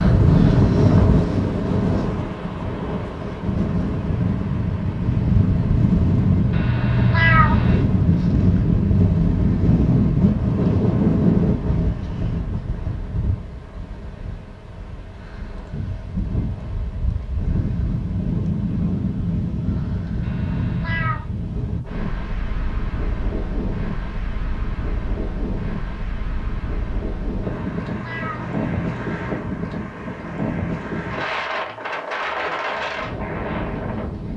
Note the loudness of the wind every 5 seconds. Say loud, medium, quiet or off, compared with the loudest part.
loud, loud, loud, medium, medium, medium, medium.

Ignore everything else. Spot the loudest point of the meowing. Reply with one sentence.
The volume of the meowing peaks at 7 seconds.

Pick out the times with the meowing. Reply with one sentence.
The meowing can be heard from 6.5 to 7.8 s, from 20.2 to 21.3 s and from 27.4 to 29.1 s.